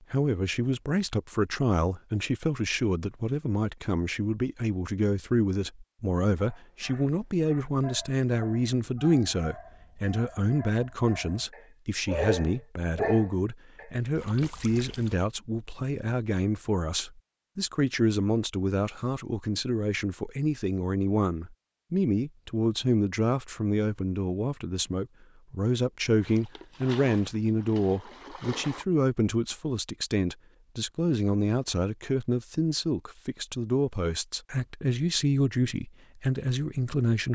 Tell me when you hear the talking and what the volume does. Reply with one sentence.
The talking can be heard from 0.1 to 37.3 s, at a steady volume.